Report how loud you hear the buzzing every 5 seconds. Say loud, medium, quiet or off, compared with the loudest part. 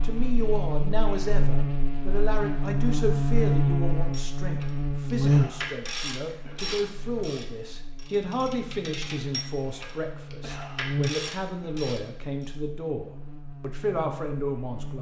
loud, loud, medium.